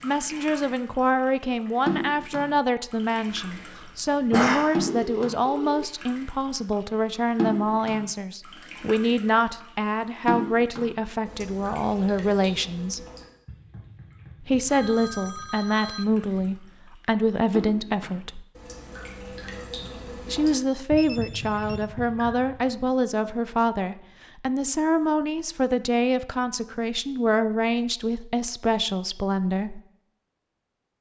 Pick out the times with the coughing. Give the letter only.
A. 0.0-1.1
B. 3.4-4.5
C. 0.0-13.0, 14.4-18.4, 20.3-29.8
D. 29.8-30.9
B.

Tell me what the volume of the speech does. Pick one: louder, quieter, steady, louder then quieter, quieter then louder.
steady.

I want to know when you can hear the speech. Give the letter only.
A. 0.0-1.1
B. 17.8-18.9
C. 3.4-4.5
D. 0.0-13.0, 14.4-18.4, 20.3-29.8
D.